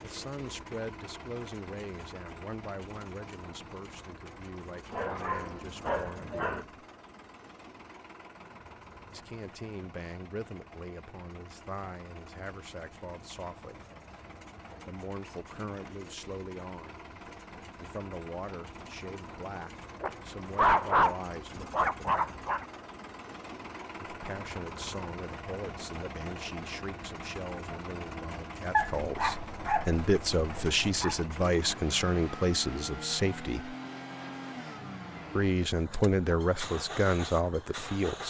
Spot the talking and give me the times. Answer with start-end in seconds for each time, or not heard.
0.0-6.7, 9.1-13.8, 14.8-17.0, 17.8-22.4, 24.0-33.8, 35.4-38.2.